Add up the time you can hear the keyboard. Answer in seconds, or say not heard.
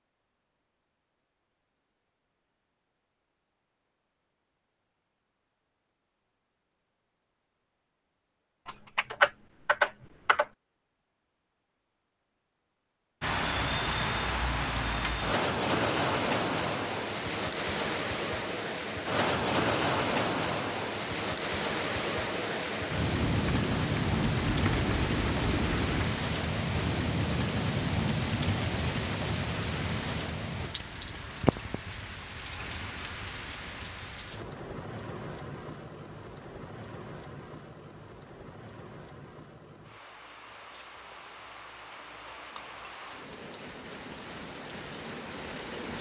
5 s.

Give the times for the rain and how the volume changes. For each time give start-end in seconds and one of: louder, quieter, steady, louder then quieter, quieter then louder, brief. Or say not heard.
13.2-45.9 quieter.